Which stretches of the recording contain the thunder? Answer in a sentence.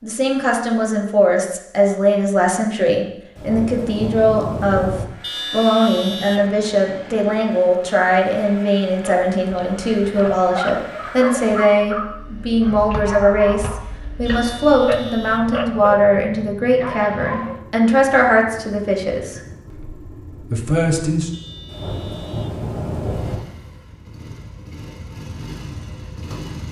The thunder can be heard from 3.4 to 5.0 s and from 21.6 to 23.4 s.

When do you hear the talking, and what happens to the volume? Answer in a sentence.
You can hear the talking from 0.0 to 21.3 s, at a steady volume.